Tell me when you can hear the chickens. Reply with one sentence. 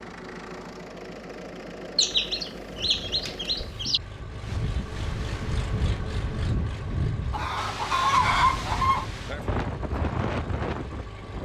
The chickens can be heard from 1.9 to 4.0 s and from 7.3 to 9.1 s.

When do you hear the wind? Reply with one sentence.
The wind can be heard from 2.7 to 11.4 s.